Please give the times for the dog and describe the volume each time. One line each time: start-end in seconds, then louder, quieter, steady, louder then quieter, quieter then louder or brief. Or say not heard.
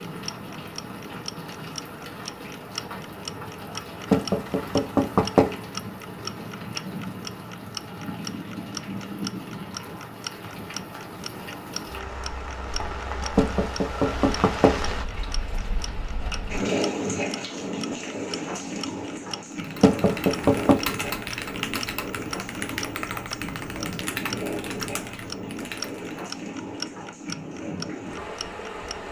not heard.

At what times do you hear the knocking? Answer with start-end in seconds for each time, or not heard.
4.1-5.5, 13.3-14.8, 19.8-20.9.